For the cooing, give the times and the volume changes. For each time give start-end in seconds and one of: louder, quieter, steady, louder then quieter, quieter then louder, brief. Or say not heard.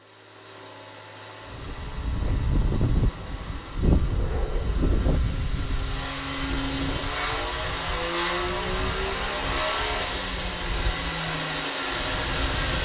not heard.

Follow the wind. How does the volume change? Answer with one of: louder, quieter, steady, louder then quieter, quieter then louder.
quieter.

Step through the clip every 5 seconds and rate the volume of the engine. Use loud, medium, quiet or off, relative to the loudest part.
quiet, loud, loud.